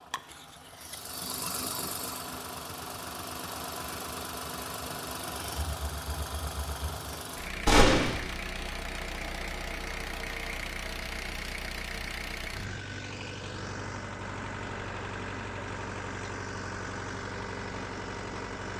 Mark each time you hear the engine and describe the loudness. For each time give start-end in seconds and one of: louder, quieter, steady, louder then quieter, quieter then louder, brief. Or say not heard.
0.0-18.7 steady.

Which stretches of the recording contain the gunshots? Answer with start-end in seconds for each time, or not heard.
7.7-8.2.